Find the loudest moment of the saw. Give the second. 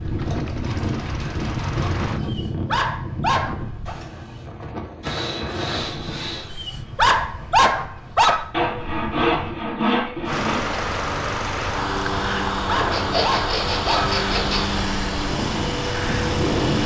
9 s.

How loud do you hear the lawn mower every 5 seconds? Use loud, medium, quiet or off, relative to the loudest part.
medium, off, loud, loud.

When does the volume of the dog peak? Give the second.
8 s.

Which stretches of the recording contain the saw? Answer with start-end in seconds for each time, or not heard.
0.1-2.3, 5.0-6.5, 8.5-10.6, 12.9-14.8.